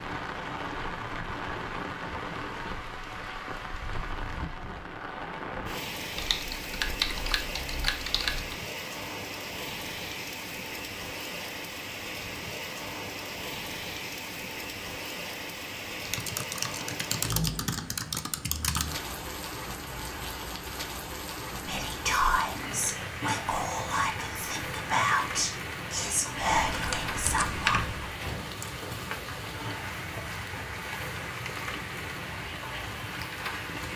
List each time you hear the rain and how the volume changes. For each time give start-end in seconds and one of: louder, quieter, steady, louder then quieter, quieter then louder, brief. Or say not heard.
0.0-33.9 steady.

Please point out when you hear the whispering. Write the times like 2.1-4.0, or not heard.
21.6-27.8.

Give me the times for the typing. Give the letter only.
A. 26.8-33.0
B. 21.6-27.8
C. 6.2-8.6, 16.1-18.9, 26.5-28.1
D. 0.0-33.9
C.